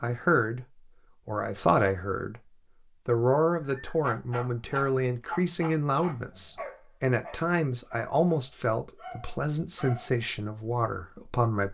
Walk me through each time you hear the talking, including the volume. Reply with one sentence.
You can hear the talking briefly from 0.0 to 0.7 s; briefly from 1.2 to 2.4 s; and from 3.0 to 11.6 s, at a steady volume.